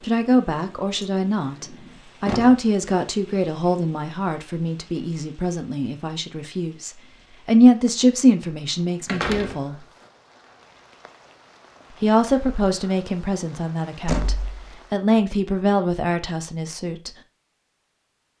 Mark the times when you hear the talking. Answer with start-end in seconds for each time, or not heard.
0.0-9.8, 12.0-17.1.